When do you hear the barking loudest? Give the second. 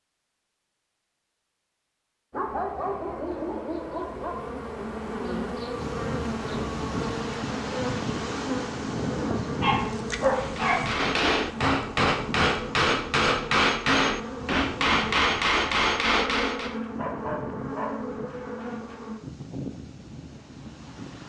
10 s.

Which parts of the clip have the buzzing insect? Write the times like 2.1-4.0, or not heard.
2.3-19.1.